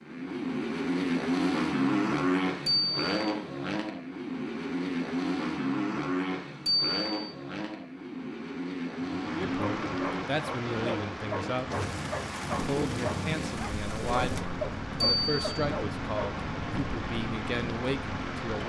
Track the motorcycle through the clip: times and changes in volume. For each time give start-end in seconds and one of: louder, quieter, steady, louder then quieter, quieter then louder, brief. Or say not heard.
0.0-18.6 quieter.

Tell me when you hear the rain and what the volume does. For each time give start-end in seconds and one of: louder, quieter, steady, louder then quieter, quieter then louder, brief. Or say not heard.
8.9-18.6 steady.